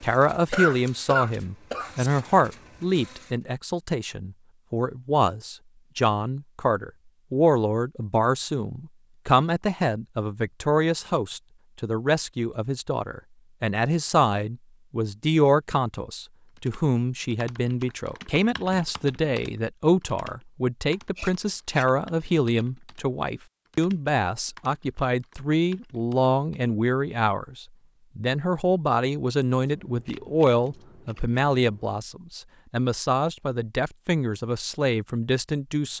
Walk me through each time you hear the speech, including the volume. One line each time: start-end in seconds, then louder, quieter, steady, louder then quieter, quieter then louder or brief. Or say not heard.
0.0-35.9 steady.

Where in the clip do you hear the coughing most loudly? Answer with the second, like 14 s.
1 s.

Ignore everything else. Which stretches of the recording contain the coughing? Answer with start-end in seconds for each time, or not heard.
0.5-2.4.